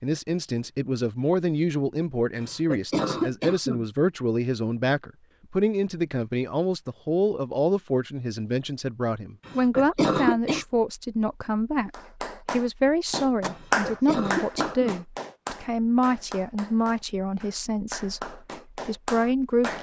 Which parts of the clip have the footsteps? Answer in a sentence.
The footsteps can't be heard in this clip.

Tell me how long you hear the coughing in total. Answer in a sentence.
You can hear the coughing for 4 seconds altogether.